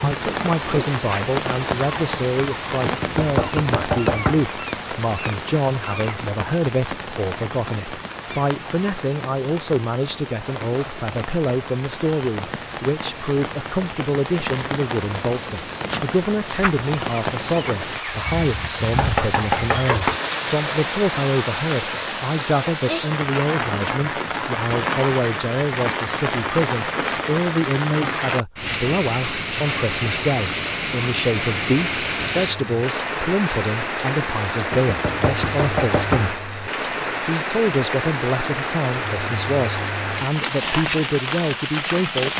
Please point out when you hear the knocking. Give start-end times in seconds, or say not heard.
2.9-4.5, 18.9-20.2, 34.7-36.4.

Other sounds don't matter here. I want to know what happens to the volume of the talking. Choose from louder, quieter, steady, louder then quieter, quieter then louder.
steady.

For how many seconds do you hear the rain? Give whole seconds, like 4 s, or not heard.
42 s.